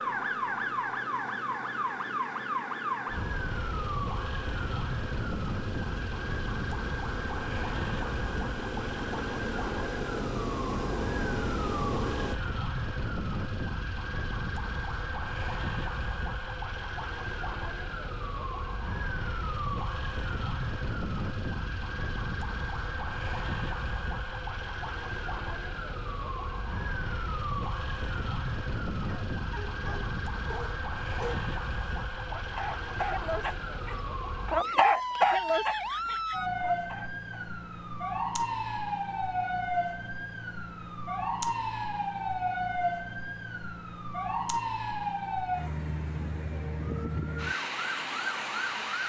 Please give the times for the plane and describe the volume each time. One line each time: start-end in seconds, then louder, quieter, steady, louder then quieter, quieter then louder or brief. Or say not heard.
0.0-12.3 louder.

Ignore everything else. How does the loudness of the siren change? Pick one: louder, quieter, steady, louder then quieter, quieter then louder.
steady.